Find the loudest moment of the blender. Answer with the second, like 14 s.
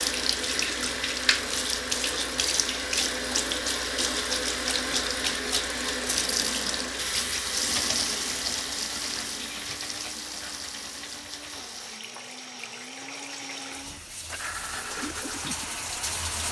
15 s.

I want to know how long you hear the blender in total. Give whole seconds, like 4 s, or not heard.
9 s.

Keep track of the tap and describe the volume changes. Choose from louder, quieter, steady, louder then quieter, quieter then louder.
quieter.